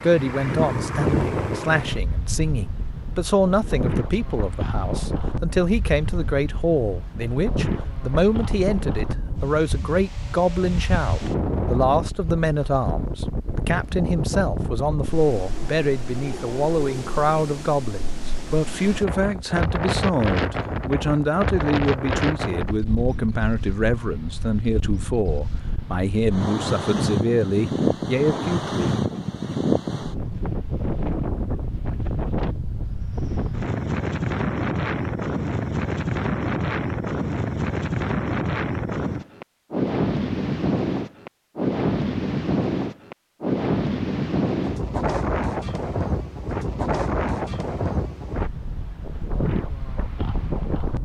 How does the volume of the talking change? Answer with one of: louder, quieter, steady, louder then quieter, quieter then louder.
steady.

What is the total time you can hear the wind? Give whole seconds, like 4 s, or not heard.
51 s.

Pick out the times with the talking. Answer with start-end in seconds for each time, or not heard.
0.0-28.9.